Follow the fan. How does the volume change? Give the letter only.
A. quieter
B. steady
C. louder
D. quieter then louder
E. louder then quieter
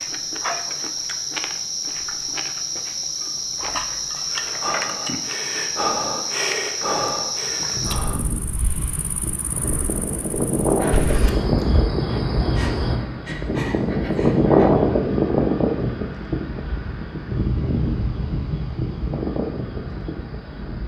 E.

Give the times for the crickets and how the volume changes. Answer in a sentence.
The crickets can be heard from 0.0 to 20.8 s, getting quieter.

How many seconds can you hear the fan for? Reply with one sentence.
The fan can be heard for 13 seconds in total.